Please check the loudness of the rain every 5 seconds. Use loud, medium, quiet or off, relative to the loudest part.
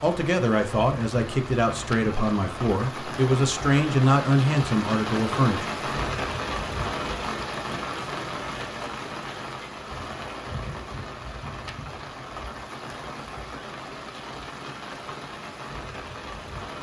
loud, loud, medium, medium.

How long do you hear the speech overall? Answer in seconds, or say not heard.
6 s.